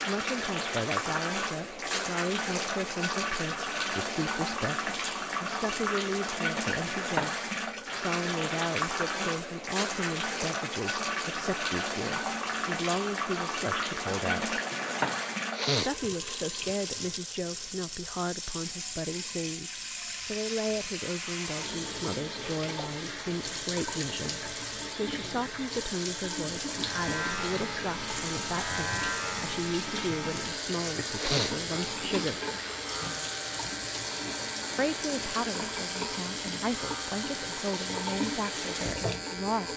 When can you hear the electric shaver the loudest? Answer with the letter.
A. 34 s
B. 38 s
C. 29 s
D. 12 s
C.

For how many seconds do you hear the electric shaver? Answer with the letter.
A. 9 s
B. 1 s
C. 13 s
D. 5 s
C.